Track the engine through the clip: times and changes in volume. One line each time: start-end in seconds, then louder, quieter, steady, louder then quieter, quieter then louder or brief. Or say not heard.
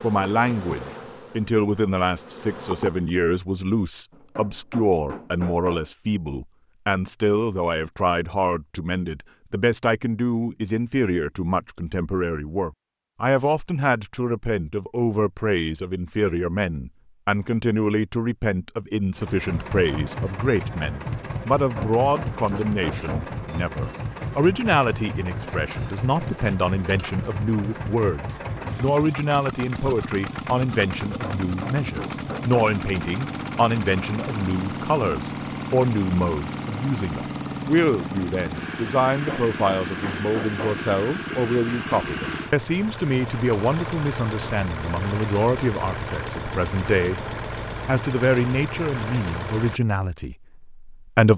19.1-49.8 steady.